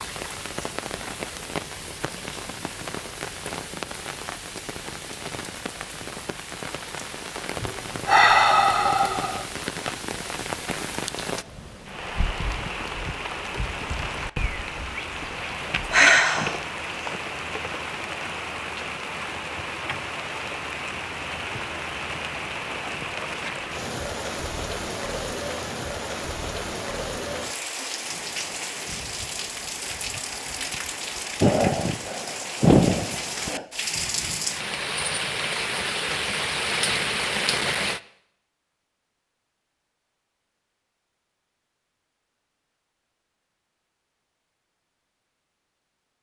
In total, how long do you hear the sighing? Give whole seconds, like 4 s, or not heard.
5 s.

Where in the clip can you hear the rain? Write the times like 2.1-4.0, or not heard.
0.0-38.0.